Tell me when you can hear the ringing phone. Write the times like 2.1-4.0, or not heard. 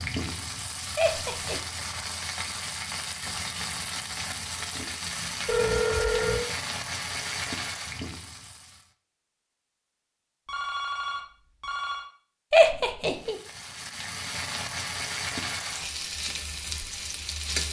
5.5-6.4, 10.4-12.1.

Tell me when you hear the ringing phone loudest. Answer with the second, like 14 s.
6 s.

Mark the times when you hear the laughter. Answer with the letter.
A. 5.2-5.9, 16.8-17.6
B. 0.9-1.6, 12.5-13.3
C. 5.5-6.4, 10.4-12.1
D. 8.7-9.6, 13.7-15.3
B.